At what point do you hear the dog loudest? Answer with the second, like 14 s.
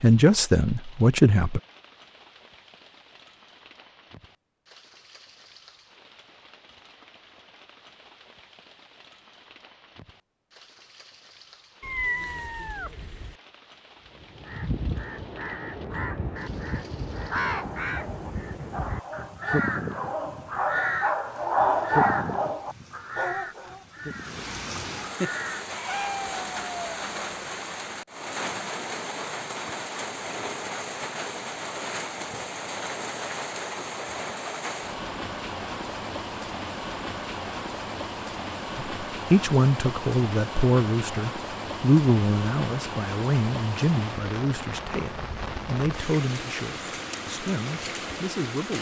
22 s.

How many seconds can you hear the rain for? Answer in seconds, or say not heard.
49 s.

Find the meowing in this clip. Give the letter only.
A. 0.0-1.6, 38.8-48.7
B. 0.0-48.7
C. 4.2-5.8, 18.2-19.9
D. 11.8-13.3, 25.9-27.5
D.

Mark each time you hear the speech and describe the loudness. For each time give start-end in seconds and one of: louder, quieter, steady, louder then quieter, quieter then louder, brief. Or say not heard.
0.0-1.6 brief
38.8-48.7 quieter.